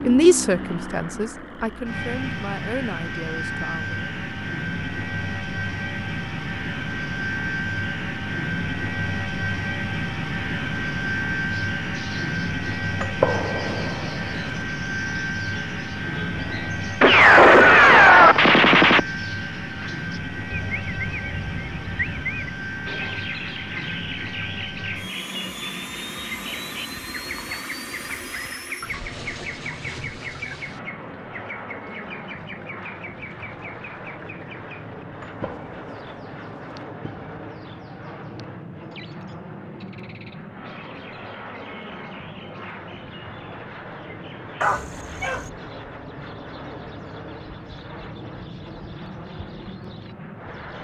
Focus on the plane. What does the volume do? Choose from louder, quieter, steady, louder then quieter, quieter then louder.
quieter.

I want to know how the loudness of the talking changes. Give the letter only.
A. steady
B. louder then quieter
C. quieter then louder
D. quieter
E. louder
D.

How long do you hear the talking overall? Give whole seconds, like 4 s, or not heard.
4 s.